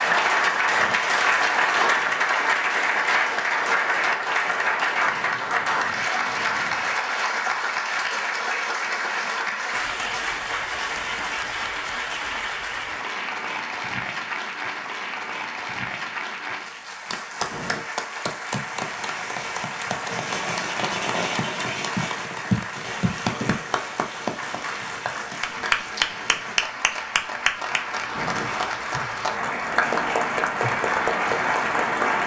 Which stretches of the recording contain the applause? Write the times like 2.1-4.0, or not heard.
0.0-32.2.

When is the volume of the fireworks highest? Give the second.
21 s.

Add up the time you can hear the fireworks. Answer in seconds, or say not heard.
8 s.